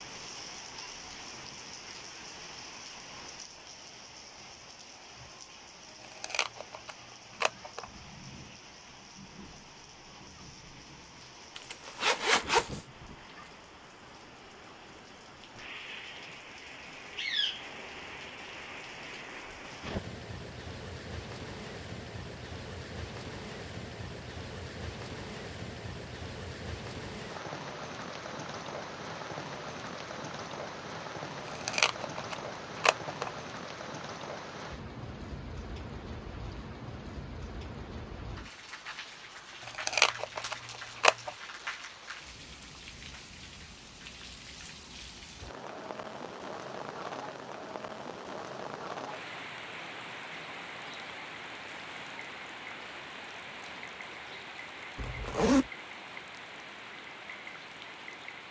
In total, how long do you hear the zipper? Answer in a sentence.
You can hear the zipper for 2 seconds altogether.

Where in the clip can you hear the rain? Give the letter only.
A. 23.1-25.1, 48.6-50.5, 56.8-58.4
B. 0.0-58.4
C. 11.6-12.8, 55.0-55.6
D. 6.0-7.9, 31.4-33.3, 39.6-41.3
B.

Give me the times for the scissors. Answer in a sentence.
You can hear the scissors from 6.0 to 7.9 s, from 31.4 to 33.3 s and from 39.6 to 41.3 s.